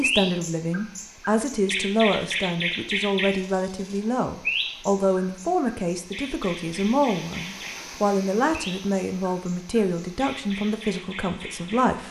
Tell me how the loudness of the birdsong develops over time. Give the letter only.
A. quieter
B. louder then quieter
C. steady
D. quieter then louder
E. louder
A.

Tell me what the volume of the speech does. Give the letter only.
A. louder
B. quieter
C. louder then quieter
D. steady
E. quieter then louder
D.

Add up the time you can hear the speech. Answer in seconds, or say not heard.
12 s.